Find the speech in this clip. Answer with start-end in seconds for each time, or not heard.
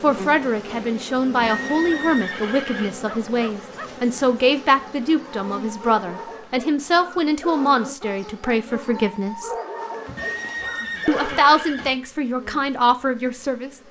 0.0-9.5, 11.1-13.8.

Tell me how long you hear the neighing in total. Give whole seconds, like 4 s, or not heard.
3 s.